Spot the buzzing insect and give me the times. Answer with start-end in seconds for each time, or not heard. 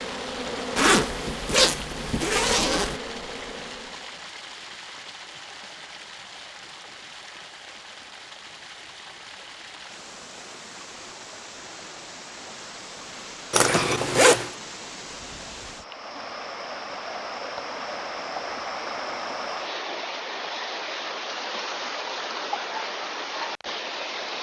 0.0-4.2.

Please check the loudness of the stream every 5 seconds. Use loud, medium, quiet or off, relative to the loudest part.
medium, medium, medium, loud, loud.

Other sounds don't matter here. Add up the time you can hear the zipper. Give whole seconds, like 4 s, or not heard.
3 s.